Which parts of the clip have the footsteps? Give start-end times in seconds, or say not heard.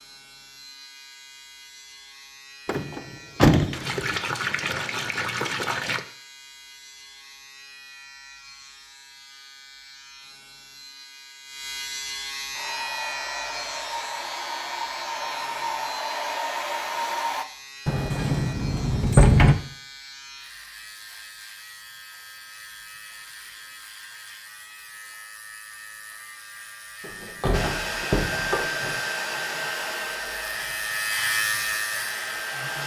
not heard.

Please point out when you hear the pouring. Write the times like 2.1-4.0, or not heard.
3.7-6.0.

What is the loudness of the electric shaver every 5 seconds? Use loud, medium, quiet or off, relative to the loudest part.
quiet, quiet, medium, quiet, quiet, quiet, loud.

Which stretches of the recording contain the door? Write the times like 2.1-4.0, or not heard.
2.6-4.2, 17.9-19.6, 27.0-29.0.